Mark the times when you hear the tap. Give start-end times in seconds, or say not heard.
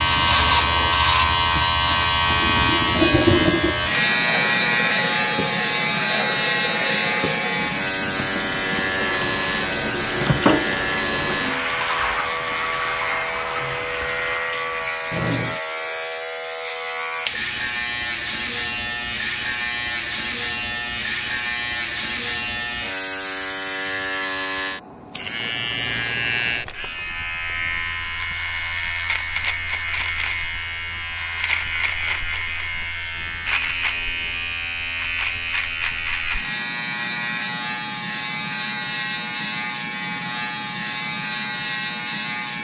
0.0-15.6.